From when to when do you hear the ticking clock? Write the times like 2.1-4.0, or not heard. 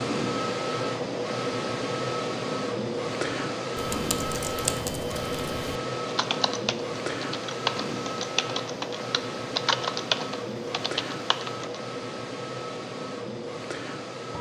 not heard.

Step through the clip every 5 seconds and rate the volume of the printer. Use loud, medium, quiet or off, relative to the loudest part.
loud, loud, medium.